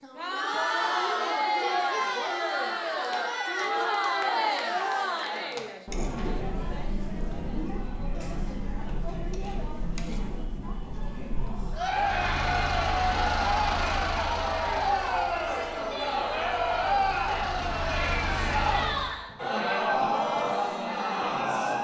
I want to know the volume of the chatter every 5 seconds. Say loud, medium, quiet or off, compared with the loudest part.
loud, medium, loud, loud, loud.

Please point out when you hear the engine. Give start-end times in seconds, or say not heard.
11.8-19.2.